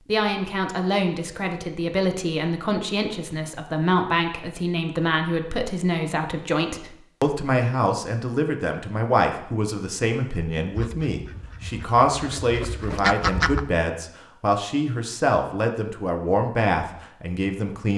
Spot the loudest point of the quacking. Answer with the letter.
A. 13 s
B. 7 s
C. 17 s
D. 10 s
A.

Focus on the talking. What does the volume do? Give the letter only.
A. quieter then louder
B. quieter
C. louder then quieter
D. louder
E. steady
E.